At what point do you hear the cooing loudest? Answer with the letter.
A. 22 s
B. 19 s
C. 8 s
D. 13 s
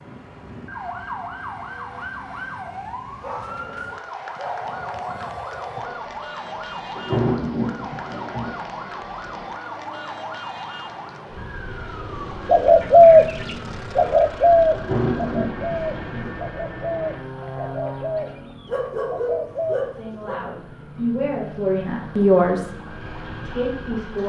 D.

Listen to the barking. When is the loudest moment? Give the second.
19 s.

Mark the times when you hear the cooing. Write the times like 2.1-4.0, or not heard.
12.4-20.2.